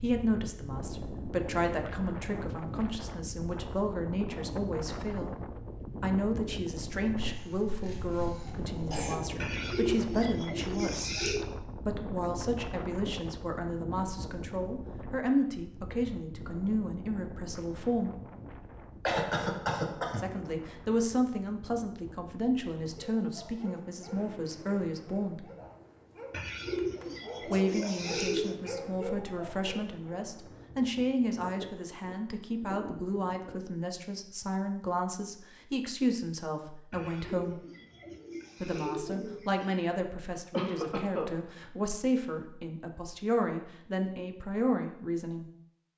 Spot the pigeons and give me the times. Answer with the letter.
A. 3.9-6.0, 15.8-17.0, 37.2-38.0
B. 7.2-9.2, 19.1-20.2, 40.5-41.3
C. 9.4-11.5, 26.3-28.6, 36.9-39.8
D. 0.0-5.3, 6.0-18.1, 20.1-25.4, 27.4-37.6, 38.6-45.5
C.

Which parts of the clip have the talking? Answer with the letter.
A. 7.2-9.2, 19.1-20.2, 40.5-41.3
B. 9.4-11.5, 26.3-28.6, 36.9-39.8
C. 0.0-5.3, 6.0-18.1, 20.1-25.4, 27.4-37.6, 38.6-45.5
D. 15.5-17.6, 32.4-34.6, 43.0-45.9
C.